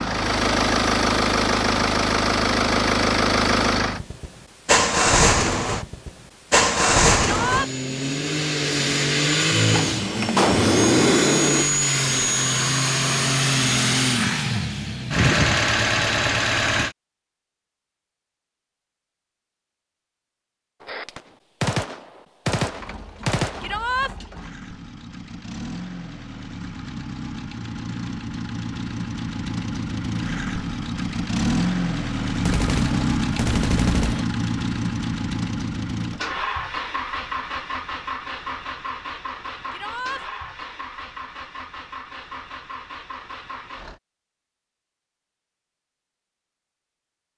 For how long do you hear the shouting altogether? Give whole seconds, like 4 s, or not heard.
2 s.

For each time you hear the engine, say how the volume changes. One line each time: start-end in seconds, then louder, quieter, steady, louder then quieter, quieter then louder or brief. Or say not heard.
0.0-16.9 steady
22.6-44.0 louder then quieter.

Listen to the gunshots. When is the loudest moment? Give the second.
11 s.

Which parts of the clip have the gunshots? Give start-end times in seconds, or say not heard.
9.7-11.7, 20.8-23.8, 32.4-34.2.